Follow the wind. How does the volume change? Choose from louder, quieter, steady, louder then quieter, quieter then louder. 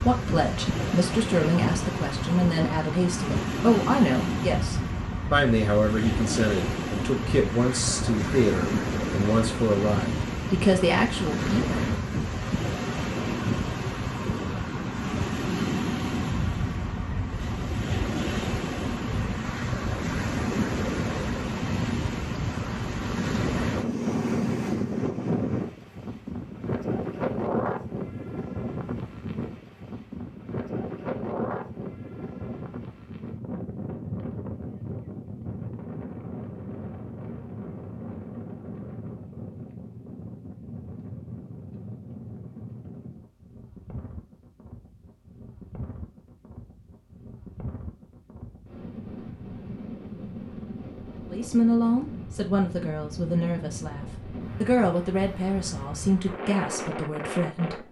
quieter.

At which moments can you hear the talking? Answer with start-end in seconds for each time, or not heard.
0.0-11.8, 51.3-57.8.